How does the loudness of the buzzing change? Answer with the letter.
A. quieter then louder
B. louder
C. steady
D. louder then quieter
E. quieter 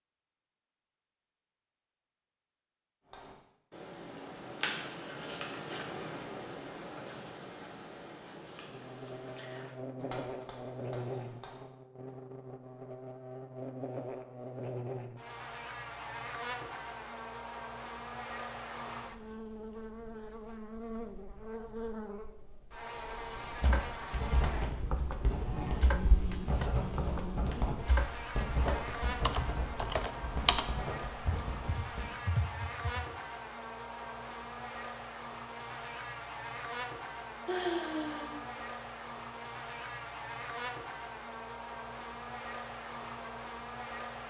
C.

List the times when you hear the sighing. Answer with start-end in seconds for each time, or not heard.
37.5-38.4.